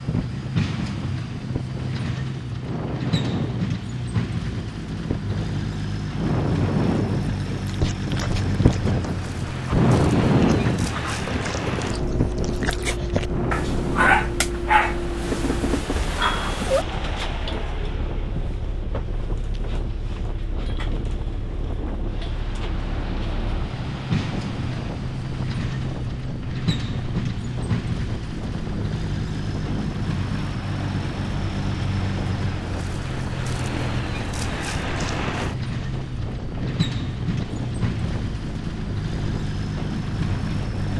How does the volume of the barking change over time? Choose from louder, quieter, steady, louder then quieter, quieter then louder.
louder.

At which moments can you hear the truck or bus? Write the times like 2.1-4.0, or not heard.
0.0-40.9.